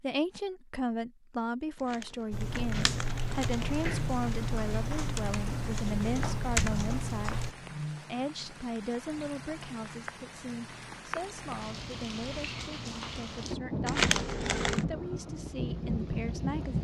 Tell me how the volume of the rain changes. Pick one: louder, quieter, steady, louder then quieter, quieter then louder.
louder.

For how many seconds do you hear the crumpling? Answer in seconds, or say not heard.
3 s.